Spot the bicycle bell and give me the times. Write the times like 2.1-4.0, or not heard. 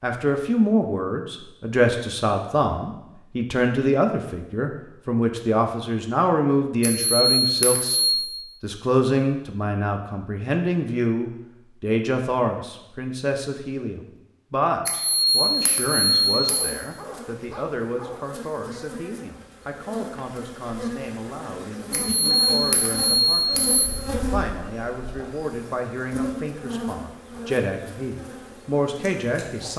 6.8-8.3, 14.8-16.8, 21.9-23.9.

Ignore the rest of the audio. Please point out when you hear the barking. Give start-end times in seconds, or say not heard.
16.4-18.2.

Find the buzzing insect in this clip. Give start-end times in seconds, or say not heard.
15.1-29.7.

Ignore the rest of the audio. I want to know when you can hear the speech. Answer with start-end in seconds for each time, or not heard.
0.0-8.0, 8.6-29.7.